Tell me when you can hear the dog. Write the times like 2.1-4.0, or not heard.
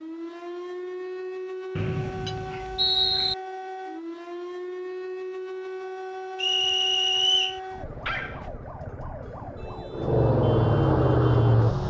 2.2-3.4, 7.2-8.5.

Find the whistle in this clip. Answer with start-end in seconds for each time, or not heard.
1.8-3.4, 6.3-7.6.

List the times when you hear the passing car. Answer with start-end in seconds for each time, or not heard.
9.9-11.8.